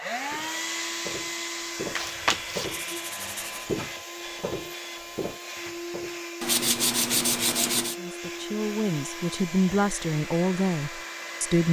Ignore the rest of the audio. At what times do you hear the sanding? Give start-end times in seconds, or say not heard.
1.9-3.6, 6.4-8.0.